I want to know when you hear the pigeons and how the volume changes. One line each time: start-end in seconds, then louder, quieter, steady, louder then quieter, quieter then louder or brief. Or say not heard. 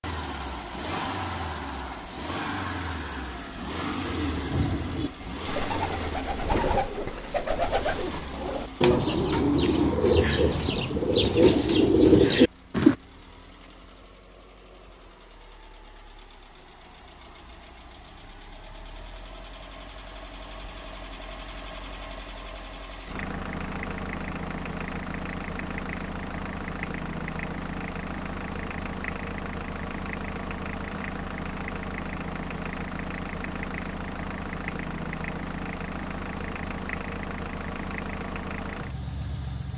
4.0-12.9 louder.